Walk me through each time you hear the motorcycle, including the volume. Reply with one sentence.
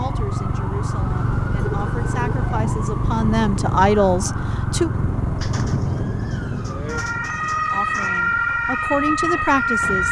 You can hear the motorcycle from 0.0 to 9.9 s, getting quieter.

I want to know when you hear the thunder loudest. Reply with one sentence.
The loudest moment of the thunder is at 6 seconds.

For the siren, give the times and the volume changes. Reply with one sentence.
You can hear the siren from 0.0 to 10.0 s, getting louder.